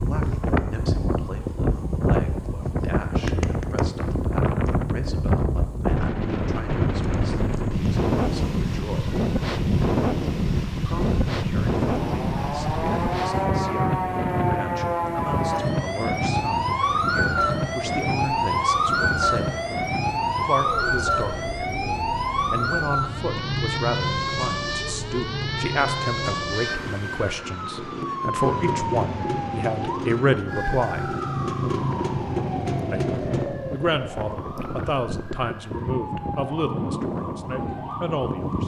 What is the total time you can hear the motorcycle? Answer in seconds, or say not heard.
5 s.